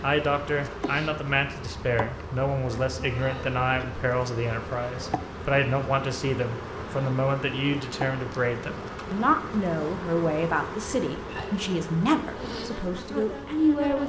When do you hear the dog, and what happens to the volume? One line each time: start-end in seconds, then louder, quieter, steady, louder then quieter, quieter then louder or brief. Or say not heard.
not heard.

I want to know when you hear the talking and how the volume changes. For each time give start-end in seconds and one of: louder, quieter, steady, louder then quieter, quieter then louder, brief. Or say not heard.
0.0-14.0 steady.